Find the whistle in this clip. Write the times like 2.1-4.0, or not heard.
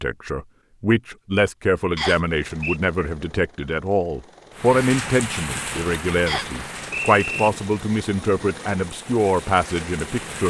1.9-2.8, 6.2-7.5.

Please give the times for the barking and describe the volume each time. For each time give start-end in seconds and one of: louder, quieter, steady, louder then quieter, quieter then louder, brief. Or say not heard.
not heard.